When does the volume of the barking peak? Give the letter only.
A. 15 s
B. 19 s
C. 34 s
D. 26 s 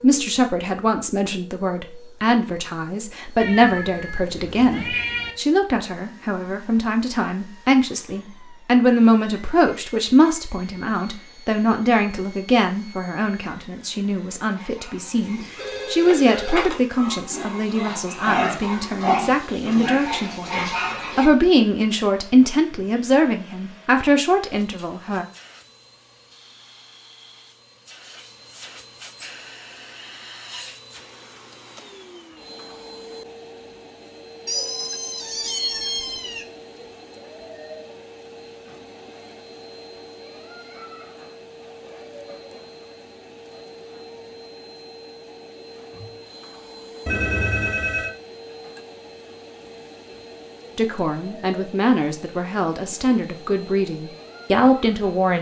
B.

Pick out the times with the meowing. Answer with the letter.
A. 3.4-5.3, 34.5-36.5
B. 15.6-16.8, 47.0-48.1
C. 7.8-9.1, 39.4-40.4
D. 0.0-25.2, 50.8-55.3
A.